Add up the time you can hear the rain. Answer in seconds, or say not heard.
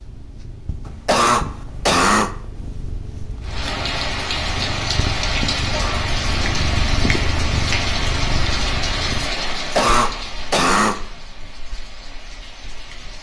10 s.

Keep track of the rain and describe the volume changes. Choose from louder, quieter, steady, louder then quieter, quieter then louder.
quieter.